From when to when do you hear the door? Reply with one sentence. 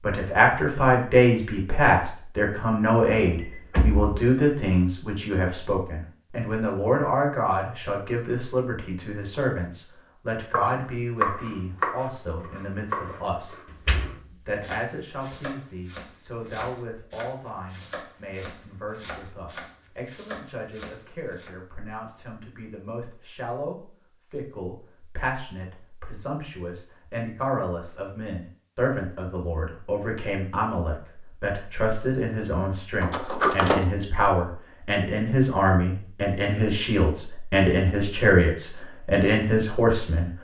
The door can be heard from 3.3 to 4.2 s, from 13.8 to 14.8 s and from 33.0 to 33.9 s.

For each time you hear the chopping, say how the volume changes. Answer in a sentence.
The chopping can be heard from 10.5 to 21.6 s, getting quieter.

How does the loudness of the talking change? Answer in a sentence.
The loudness of the talking goes down, then up.